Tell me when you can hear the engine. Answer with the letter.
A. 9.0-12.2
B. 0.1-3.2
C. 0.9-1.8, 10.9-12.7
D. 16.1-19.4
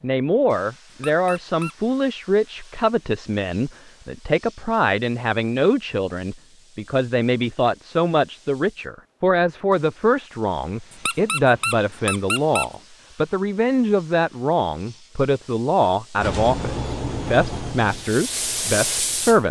D.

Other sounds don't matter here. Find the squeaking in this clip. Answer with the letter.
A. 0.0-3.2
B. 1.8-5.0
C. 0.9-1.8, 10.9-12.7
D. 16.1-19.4
C.